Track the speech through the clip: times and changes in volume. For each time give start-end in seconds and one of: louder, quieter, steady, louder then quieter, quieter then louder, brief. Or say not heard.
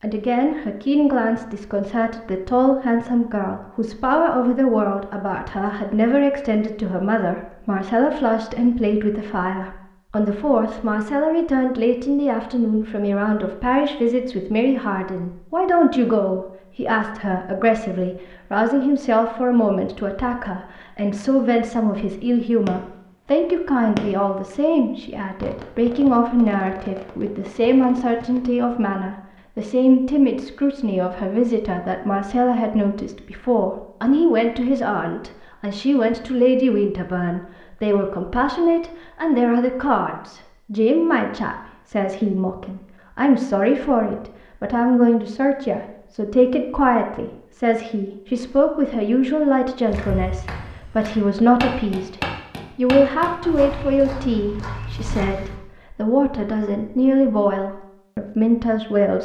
0.0-59.2 steady.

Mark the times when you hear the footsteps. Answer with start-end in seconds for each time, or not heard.
49.9-55.6.